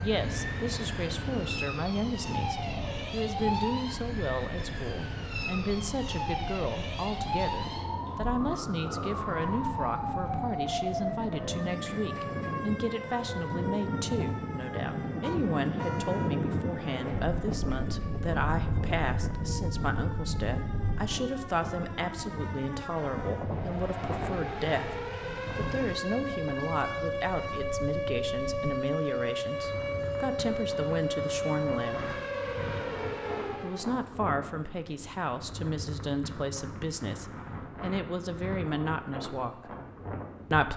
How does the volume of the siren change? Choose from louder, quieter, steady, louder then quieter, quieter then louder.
quieter then louder.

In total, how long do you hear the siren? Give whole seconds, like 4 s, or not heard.
34 s.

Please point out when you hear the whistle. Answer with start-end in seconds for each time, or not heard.
not heard.